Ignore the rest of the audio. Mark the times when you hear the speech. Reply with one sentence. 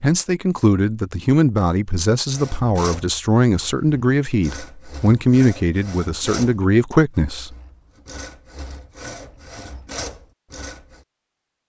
The speech can be heard from 0.0 to 7.5 s.